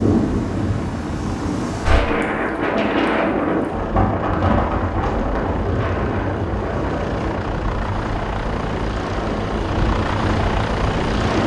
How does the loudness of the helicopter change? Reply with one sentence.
The loudness of the helicopter goes up.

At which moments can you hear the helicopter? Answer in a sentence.
The helicopter can be heard from 0.0 to 11.4 s.